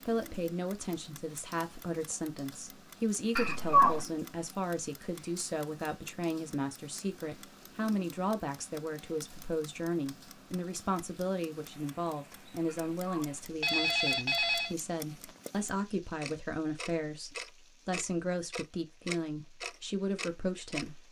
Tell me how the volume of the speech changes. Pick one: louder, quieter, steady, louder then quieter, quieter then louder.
steady.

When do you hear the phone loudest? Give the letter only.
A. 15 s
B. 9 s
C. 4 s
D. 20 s
C.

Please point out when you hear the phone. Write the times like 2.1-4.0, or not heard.
3.4-4.0, 12.7-14.8.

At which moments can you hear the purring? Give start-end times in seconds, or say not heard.
not heard.